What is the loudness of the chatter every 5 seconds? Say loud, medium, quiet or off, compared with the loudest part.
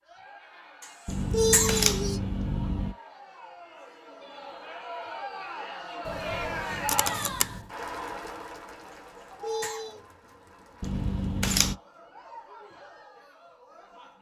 medium, loud, quiet.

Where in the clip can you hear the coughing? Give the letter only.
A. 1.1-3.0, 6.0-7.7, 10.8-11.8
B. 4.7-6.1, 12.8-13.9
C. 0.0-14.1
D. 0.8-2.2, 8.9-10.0
D.